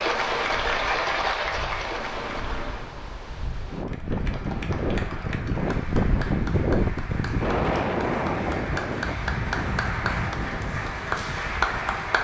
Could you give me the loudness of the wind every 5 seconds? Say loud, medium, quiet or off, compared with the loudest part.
medium, loud, medium.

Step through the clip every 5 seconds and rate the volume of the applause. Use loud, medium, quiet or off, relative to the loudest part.
loud, medium, loud.